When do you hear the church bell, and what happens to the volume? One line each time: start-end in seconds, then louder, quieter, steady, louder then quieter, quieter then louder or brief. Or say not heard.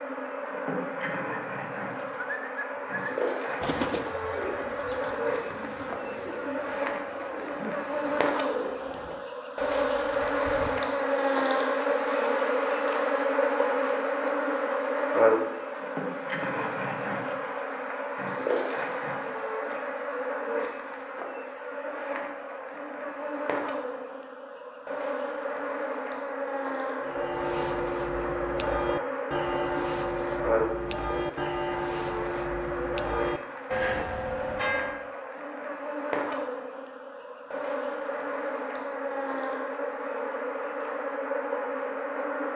27.0-35.1 steady.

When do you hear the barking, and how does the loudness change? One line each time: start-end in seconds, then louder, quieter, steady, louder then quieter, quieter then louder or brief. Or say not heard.
not heard.